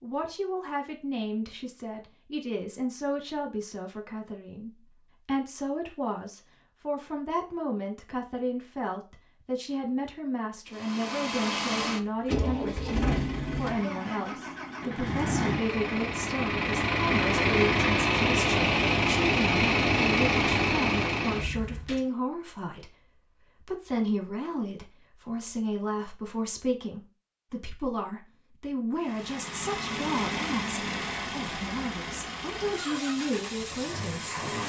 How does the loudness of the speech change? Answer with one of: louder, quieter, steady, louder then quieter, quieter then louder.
steady.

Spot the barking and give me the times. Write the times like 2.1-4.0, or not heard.
not heard.